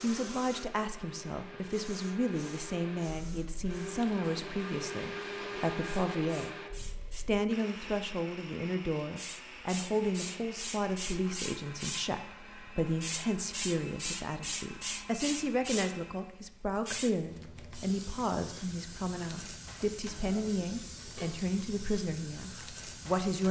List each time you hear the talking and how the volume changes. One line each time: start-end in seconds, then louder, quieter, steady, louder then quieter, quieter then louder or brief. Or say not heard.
0.0-6.5 steady
7.2-23.4 steady.